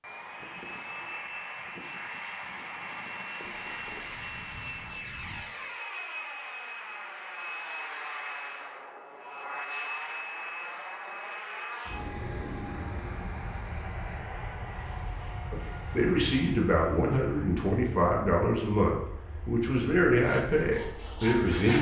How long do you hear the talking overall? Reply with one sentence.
You can hear the talking for 6 seconds altogether.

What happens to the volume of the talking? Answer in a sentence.
The volume of the talking stays about the same.